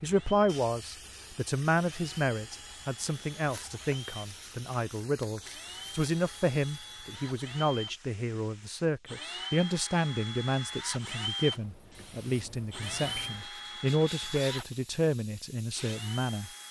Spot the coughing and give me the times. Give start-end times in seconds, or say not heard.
not heard.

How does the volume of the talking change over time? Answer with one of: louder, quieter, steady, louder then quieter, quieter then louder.
steady.